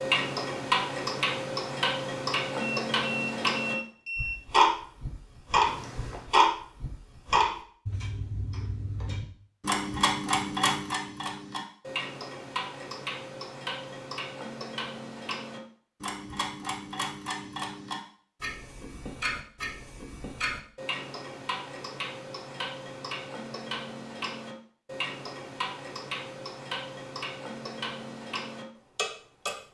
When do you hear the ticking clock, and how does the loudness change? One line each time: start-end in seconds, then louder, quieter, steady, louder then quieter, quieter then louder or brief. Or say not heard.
0.0-29.7 quieter.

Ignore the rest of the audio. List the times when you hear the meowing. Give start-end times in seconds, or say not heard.
5.7-6.3.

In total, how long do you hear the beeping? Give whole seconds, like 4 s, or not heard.
2 s.